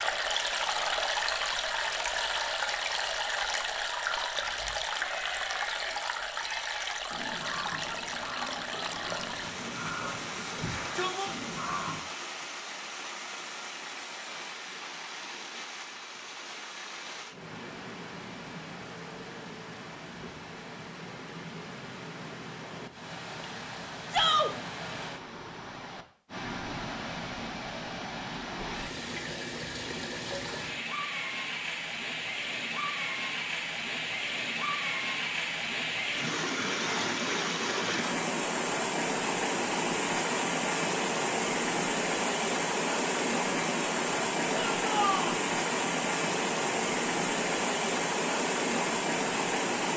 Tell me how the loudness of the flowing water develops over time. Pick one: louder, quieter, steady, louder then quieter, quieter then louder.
quieter then louder.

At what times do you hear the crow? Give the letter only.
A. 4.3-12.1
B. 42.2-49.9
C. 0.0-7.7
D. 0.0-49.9
A.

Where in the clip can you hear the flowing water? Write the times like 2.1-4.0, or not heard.
0.0-49.9.